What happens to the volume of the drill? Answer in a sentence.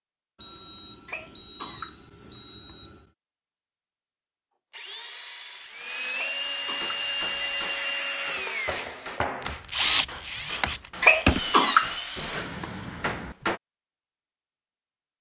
The loudness of the drill goes up, then down.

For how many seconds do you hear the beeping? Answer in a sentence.
You can hear the beeping for 5 seconds altogether.